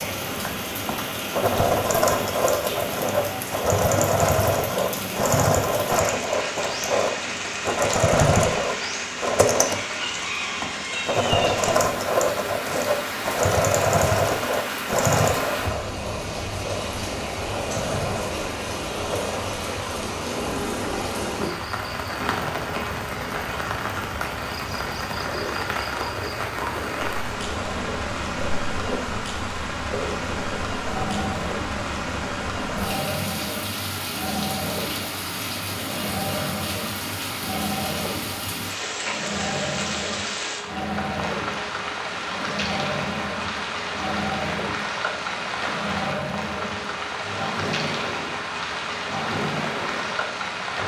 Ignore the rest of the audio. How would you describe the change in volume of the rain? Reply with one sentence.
The loudness of the rain stays about the same.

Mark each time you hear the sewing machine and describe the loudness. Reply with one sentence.
You can hear the sewing machine from 0.0 to 50.8 s, getting quieter.